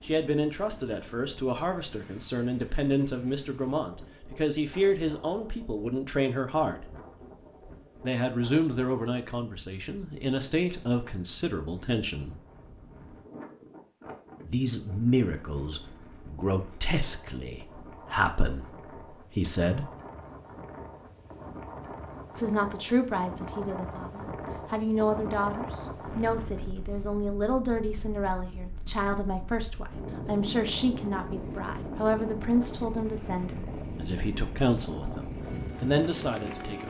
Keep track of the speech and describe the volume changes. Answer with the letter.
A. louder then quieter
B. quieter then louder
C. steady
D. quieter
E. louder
C.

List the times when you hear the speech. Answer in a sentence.
The speech can be heard from 0.0 to 6.9 s, from 8.0 to 12.3 s, from 14.4 to 19.9 s and from 22.4 to 36.8 s.